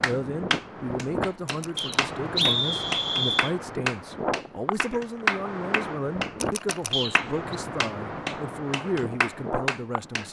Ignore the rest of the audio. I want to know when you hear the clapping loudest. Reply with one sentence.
The loudest moment of the clapping is at 5 seconds.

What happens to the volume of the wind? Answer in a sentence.
The loudness of the wind stays about the same.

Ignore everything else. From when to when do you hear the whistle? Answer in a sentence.
You can hear the whistle from 1.8 to 3.5 s and from 6.9 to 7.5 s.